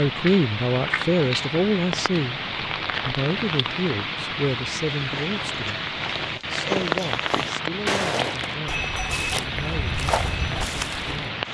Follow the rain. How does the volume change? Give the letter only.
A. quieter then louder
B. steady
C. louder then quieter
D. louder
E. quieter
B.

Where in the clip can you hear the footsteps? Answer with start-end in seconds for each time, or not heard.
4.9-11.3.